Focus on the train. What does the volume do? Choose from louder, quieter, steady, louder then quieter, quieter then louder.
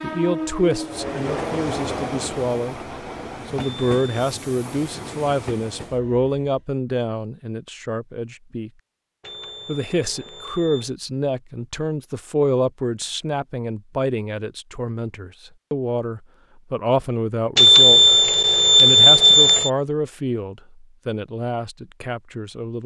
quieter.